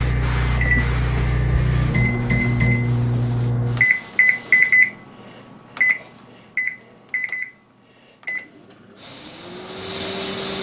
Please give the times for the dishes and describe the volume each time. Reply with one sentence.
You can't hear the dishes here.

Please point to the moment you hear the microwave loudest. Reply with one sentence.
The volume of the microwave peaks at 4 seconds.